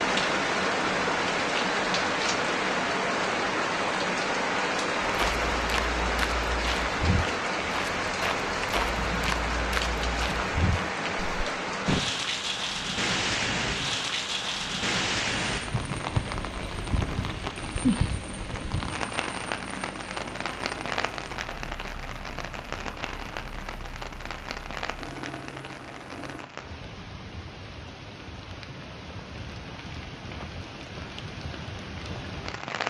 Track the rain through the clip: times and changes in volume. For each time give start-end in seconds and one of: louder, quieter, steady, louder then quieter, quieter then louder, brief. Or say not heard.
0.0-32.8 quieter.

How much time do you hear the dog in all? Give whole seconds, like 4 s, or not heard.
not heard.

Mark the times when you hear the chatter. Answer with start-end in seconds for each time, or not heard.
not heard.